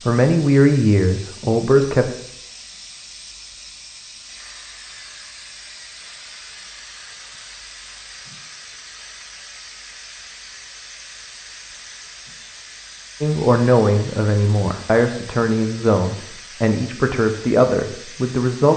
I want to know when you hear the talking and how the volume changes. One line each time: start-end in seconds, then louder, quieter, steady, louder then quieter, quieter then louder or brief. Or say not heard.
0.1-2.1 brief
13.2-18.7 steady.